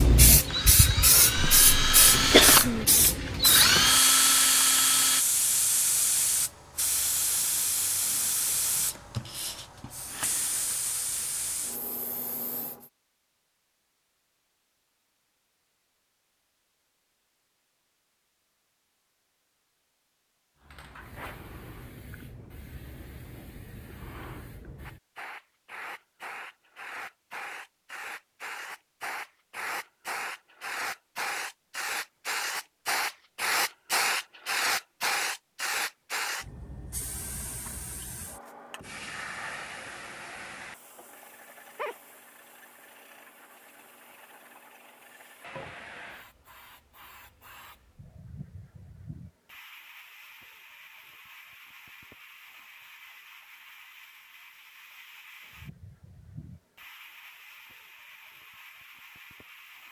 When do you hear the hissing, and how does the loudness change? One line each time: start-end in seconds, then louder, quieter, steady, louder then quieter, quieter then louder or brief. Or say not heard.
0.0-12.9 quieter
20.6-59.8 louder then quieter.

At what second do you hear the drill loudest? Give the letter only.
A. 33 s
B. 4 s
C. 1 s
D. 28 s
B.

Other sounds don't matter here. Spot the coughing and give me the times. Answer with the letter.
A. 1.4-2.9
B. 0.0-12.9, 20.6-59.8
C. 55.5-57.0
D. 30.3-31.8
A.